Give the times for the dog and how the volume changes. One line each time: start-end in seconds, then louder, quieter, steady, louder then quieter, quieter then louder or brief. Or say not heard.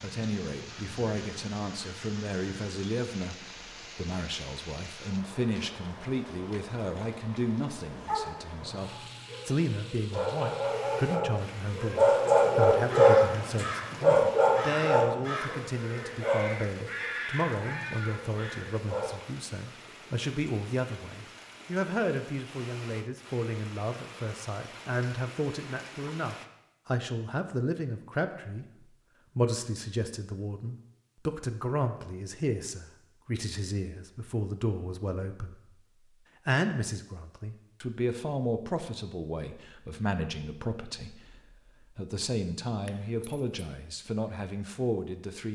8.1-19.1 louder then quieter.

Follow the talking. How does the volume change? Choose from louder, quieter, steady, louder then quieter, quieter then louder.
steady.